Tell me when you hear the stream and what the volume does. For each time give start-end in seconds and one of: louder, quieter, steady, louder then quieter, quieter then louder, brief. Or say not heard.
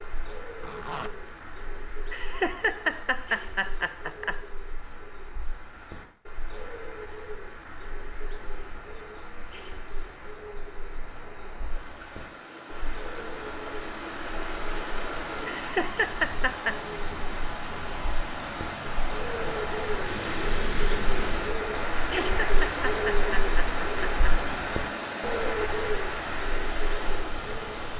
8.1-27.9 louder.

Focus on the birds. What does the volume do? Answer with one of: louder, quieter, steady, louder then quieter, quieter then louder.
louder.